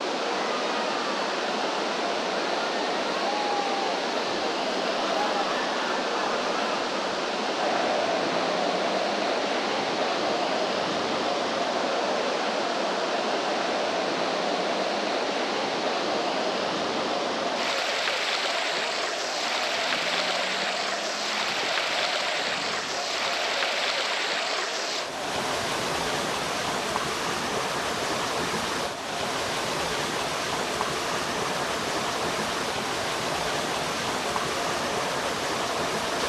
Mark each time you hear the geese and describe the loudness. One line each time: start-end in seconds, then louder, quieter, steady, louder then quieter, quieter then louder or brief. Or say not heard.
not heard.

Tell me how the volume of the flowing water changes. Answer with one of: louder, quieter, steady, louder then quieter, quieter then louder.
steady.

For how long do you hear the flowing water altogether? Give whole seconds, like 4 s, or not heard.
36 s.